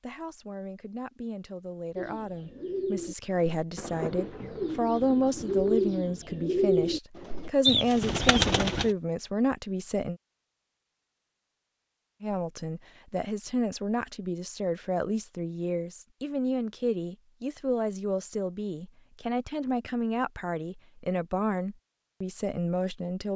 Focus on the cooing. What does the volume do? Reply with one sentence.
The volume of the cooing goes up.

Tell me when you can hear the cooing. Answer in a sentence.
The cooing can be heard from 1.9 to 8.9 s.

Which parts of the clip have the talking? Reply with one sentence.
The talking can be heard from 0.0 to 10.2 s and from 12.2 to 23.3 s.